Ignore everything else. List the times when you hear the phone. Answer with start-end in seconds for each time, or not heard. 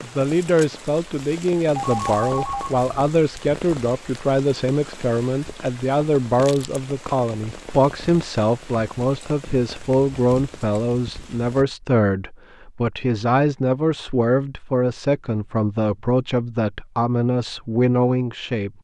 1.7-3.1.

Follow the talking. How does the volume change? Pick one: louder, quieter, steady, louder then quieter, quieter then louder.
steady.